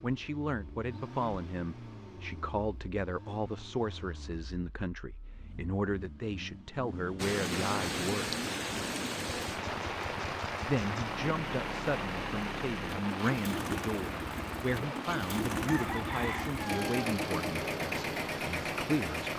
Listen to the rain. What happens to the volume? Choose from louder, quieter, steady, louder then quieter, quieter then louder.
quieter.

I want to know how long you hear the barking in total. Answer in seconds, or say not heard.
not heard.